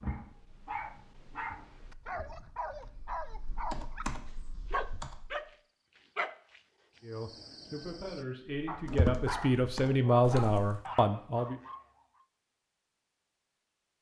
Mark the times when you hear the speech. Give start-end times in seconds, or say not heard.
7.0-11.6.